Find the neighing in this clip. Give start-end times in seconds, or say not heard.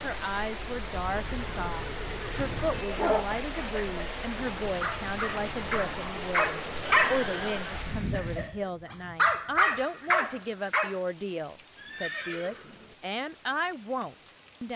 1.1-2.9, 6.8-7.8, 11.8-12.9.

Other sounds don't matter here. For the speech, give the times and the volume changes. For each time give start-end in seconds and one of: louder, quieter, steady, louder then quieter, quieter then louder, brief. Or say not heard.
0.0-14.7 steady.